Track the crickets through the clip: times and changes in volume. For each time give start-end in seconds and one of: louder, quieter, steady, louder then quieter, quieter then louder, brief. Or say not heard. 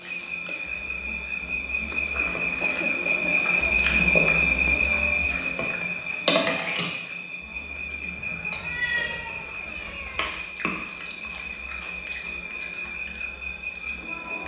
0.0-14.4 louder then quieter.